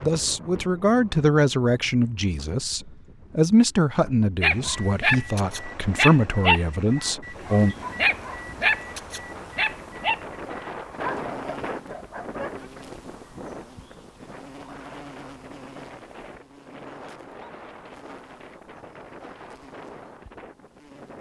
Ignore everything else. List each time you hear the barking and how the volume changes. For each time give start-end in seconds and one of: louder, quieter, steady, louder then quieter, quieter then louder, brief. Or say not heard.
4.4-12.6 quieter.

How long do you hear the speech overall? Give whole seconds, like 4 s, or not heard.
8 s.